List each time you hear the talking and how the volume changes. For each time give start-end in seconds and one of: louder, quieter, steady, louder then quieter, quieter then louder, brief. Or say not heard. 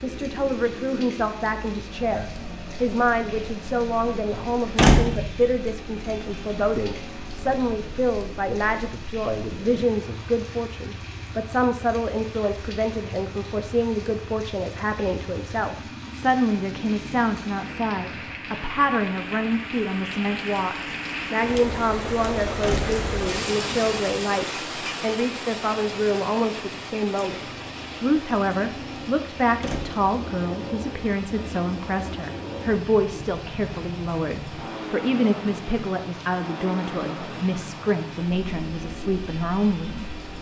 0.0-27.4 steady
28.0-40.0 steady.